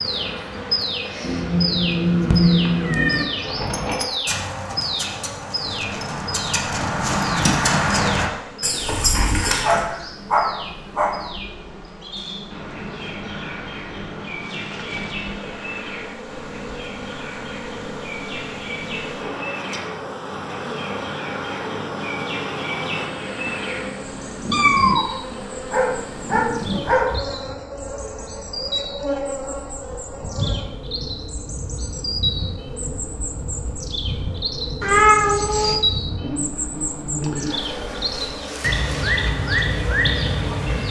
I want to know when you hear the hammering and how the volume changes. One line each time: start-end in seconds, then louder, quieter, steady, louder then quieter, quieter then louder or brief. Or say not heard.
not heard.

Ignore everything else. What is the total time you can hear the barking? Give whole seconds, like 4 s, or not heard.
3 s.